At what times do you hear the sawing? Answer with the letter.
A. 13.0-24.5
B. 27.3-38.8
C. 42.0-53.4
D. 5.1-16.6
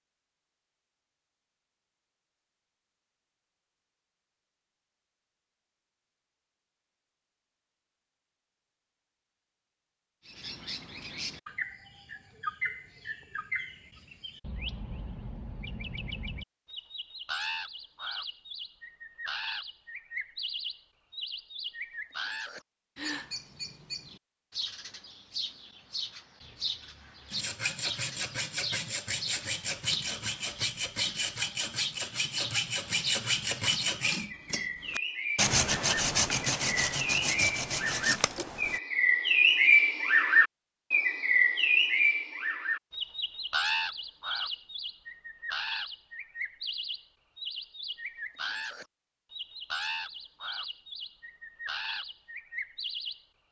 B.